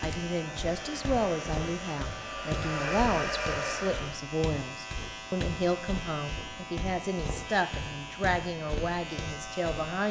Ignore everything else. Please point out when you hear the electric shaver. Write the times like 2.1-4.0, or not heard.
0.0-10.0.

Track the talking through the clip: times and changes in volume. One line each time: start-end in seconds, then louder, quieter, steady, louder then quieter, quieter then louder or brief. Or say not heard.
0.0-10.0 steady.